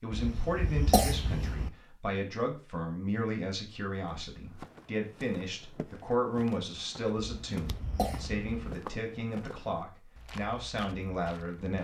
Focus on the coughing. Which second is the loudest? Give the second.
1 s.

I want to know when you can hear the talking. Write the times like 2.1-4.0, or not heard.
0.0-11.7.